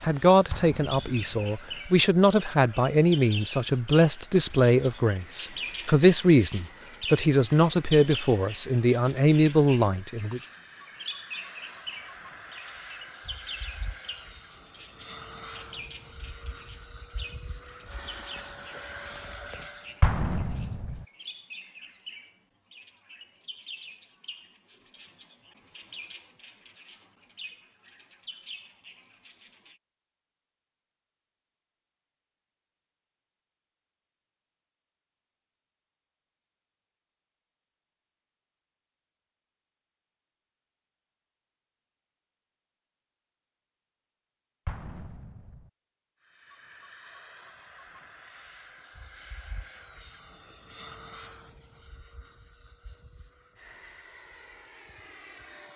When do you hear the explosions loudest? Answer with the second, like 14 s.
20 s.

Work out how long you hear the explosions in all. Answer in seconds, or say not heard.
3 s.